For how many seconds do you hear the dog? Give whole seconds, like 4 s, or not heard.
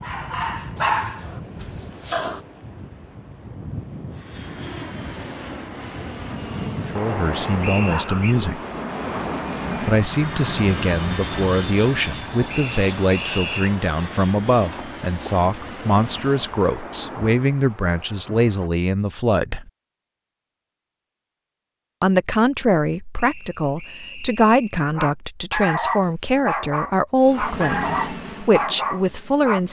7 s.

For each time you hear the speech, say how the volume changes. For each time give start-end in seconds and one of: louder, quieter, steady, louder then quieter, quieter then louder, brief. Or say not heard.
6.8-8.6 brief
9.8-19.7 steady
22.0-29.6 steady.